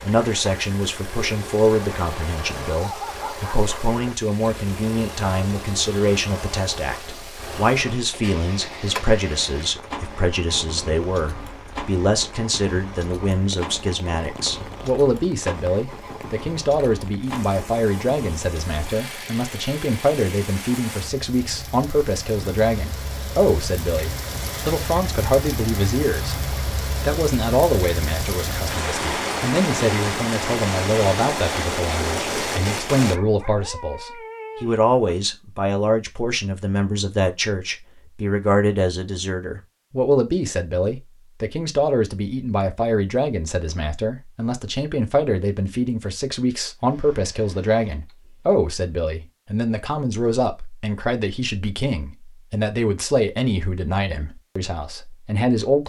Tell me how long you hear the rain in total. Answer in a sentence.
You can hear the rain for 33 seconds altogether.